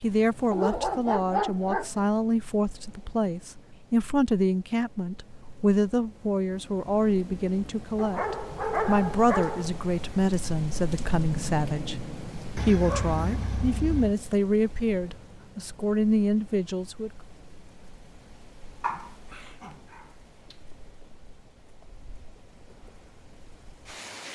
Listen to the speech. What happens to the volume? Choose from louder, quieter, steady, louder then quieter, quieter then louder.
steady.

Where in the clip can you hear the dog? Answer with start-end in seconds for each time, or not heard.
0.5-2.0, 8.0-9.8, 12.6-14.2, 18.8-20.6.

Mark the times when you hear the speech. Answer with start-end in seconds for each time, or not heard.
0.0-17.1.